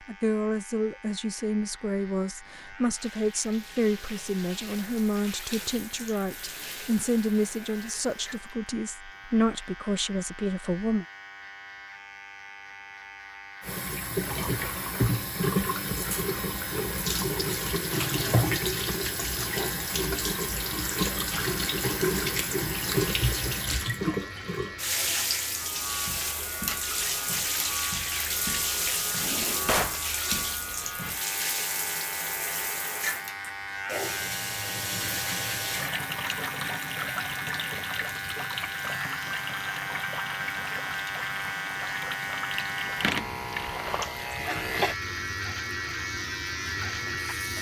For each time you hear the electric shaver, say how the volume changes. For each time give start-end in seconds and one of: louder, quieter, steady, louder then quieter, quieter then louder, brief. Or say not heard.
0.0-47.5 louder.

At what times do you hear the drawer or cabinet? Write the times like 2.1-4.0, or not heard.
29.2-30.0.